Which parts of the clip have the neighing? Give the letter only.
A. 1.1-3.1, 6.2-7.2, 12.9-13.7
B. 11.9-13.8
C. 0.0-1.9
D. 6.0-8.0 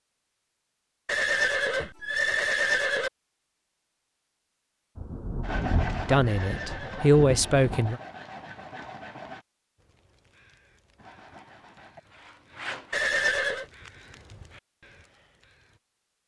A.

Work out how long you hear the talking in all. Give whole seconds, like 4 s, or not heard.
2 s.